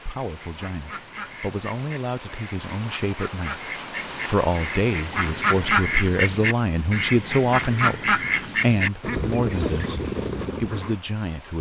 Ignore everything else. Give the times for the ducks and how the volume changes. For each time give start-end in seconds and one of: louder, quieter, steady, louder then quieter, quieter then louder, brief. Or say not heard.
0.2-10.9 louder.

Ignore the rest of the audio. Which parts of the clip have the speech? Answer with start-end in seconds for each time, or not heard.
0.0-11.5.